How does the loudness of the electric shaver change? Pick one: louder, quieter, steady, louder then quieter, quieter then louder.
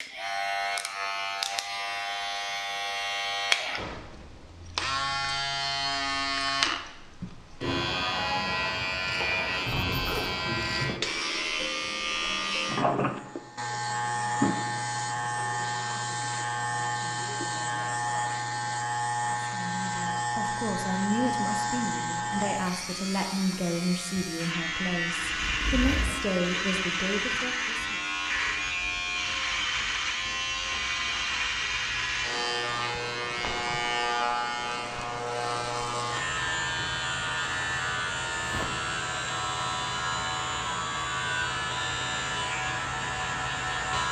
steady.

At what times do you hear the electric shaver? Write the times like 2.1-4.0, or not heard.
0.0-44.0.